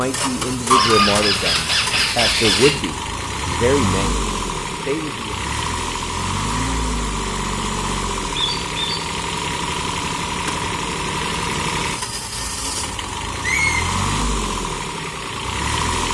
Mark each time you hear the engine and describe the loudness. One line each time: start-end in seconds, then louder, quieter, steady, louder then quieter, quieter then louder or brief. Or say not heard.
0.0-16.0 steady.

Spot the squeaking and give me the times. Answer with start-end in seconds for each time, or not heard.
0.7-2.7, 8.3-9.0, 13.4-13.8.